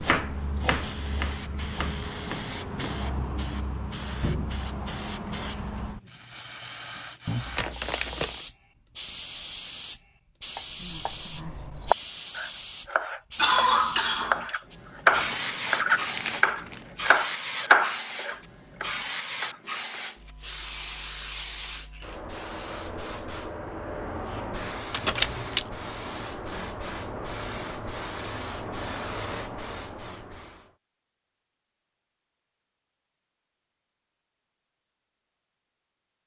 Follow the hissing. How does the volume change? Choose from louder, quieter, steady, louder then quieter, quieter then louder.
steady.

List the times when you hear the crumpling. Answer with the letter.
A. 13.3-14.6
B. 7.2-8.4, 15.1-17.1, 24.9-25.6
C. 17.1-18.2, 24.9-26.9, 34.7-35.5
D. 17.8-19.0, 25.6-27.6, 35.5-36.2
B.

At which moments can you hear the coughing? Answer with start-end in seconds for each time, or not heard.
13.3-14.6.